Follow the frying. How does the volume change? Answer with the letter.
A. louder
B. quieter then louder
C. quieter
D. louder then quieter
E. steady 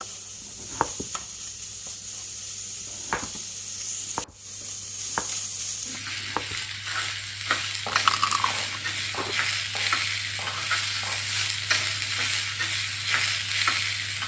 A.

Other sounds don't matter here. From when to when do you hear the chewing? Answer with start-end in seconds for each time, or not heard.
7.8-9.3.